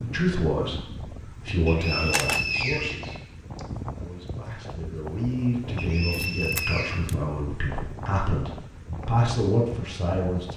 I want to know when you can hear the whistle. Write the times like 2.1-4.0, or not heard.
1.6-3.6, 5.8-7.0.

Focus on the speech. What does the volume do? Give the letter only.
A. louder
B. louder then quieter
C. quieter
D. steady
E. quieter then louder
E.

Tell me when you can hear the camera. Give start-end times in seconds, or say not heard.
1.9-2.5, 6.1-7.2.